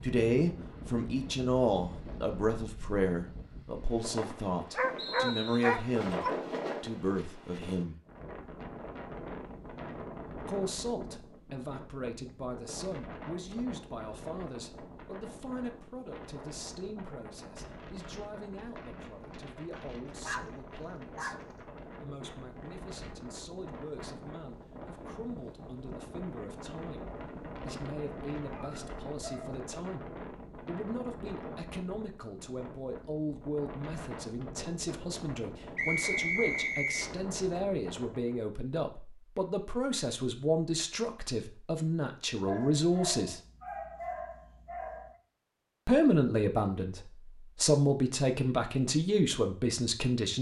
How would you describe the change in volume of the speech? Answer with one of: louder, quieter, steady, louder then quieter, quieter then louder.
quieter then louder.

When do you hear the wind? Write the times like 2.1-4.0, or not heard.
0.0-38.5.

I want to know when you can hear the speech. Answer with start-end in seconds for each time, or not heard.
0.0-8.0, 10.4-21.4, 22.0-43.4, 45.9-50.3.